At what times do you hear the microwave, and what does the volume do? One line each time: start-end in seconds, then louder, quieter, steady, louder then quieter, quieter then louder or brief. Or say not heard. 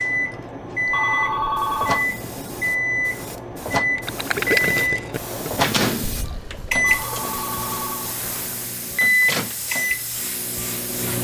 0.0-11.2 steady.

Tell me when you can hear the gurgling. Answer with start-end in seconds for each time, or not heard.
4.0-7.3.